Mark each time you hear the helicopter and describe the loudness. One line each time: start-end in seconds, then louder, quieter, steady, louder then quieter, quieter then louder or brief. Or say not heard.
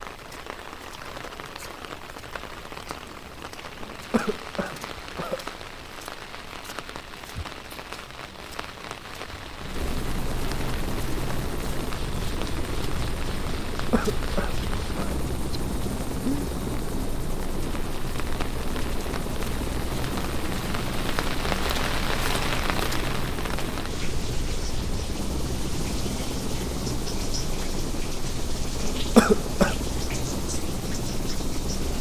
0.0-31.9 louder.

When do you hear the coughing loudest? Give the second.
29 s.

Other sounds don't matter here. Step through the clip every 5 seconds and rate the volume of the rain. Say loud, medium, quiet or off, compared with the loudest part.
medium, medium, medium, medium, loud, medium, medium.